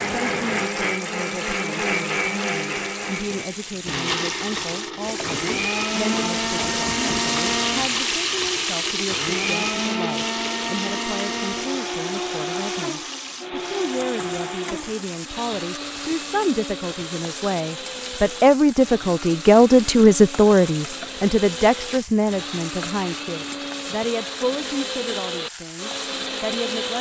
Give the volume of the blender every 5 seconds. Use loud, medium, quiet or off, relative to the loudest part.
loud, loud, loud, medium, medium, loud.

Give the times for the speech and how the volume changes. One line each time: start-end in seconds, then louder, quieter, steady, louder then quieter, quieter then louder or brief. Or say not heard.
0.1-26.9 louder then quieter.